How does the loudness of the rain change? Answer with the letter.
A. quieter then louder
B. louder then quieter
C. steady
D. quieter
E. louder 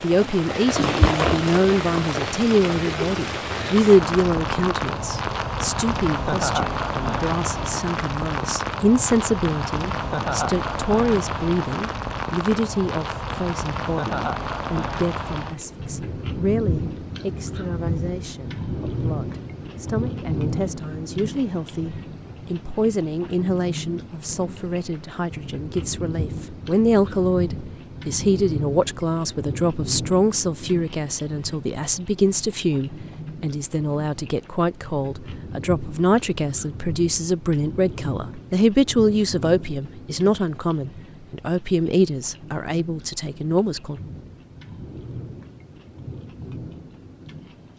D.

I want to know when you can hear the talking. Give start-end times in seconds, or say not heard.
0.0-44.0.